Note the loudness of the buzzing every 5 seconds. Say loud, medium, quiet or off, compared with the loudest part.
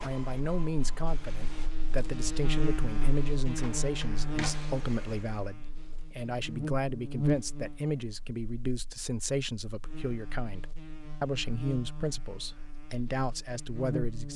loud, loud, medium.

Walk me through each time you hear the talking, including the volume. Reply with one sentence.
The talking can be heard from 0.0 to 14.3 s, at a steady volume.